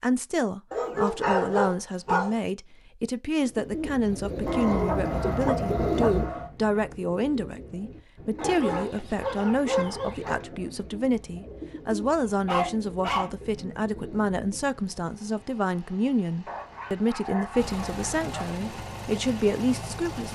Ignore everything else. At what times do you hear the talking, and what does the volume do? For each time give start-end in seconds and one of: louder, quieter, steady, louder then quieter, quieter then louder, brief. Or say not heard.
0.0-20.2 steady.